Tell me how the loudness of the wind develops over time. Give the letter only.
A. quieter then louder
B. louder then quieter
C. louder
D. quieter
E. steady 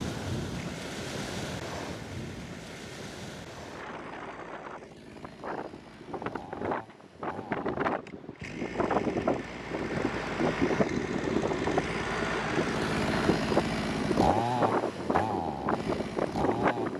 C.